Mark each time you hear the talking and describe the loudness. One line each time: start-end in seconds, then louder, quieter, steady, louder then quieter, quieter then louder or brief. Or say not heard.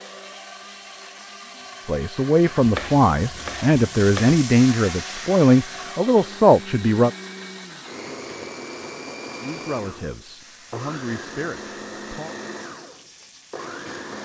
1.9-7.1 steady
9.4-12.3 brief.